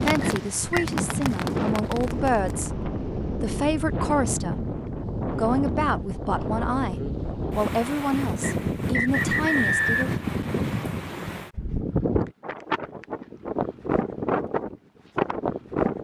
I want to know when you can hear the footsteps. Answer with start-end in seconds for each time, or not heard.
not heard.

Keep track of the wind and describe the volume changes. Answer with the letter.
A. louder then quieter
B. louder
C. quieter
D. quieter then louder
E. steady
E.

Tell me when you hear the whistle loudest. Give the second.
10 s.